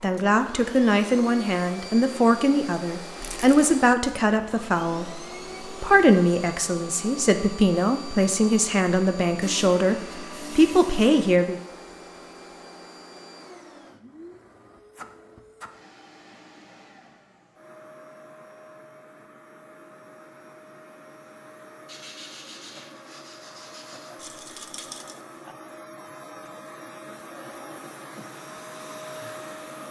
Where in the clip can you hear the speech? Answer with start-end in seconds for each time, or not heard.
0.0-11.6.